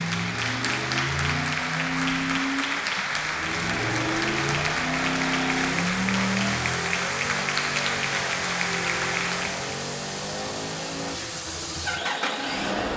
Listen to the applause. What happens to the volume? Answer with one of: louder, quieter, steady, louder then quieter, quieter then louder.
steady.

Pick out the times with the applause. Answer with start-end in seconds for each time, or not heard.
0.0-9.8.